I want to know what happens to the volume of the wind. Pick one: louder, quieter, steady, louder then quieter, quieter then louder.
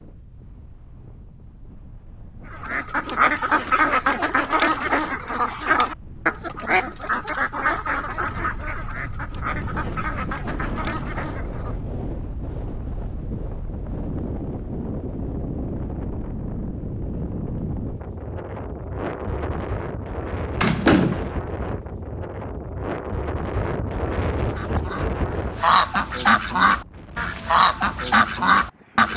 louder.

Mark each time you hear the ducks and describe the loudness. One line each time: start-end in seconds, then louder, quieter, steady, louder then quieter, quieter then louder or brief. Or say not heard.
2.5-11.8 quieter
24.4-29.1 louder.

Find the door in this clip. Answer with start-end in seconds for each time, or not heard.
20.6-21.3.